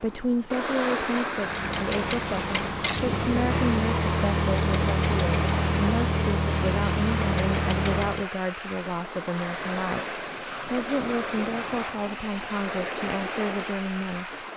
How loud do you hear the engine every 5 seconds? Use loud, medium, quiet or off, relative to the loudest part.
loud, loud, off.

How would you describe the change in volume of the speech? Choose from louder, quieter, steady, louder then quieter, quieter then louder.
steady.